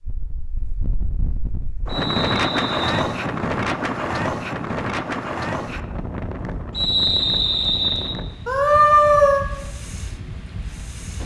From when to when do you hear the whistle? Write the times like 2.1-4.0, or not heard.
1.9-3.0, 6.7-8.2.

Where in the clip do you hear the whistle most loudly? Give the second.
7 s.